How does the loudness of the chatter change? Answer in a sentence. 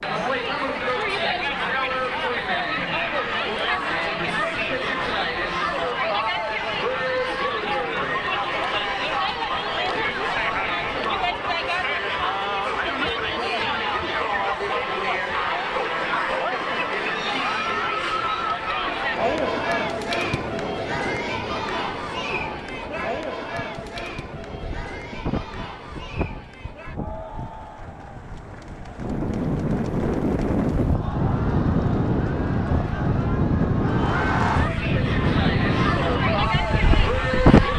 The volume of the chatter goes down, then up.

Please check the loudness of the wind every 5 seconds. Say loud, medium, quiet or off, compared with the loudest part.
quiet, quiet, quiet, quiet, quiet, medium, loud, loud.